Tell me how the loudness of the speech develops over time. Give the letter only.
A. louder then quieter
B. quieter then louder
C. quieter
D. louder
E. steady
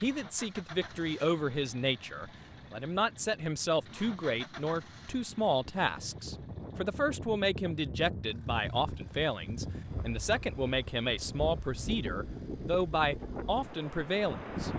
E.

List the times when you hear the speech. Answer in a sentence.
The speech can be heard from 0.0 to 14.7 s.